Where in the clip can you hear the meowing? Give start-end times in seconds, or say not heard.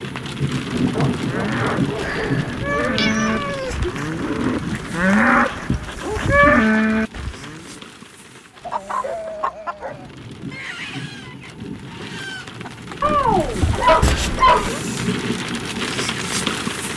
1.9-4.0, 14.0-14.8.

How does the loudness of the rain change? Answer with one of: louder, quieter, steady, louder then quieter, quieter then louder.
quieter then louder.